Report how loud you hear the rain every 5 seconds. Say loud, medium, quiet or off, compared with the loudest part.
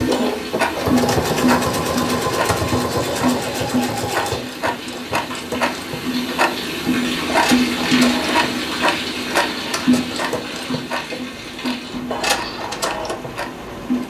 medium, loud, medium.